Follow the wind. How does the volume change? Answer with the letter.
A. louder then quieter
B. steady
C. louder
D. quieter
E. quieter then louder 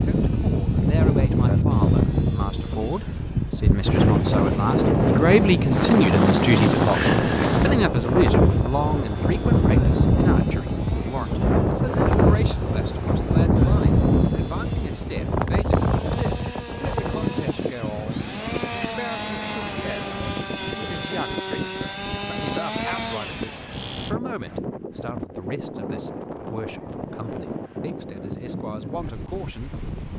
D.